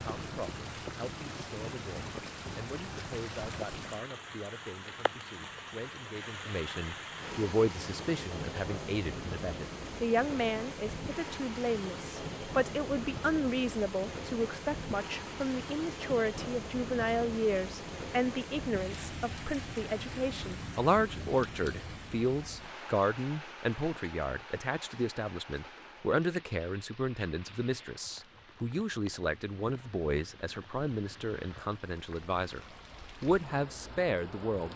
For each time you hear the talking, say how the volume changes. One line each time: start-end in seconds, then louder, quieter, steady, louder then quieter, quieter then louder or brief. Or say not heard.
0.0-32.6 louder
33.2-34.7 brief.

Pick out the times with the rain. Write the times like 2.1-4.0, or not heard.
0.0-34.7.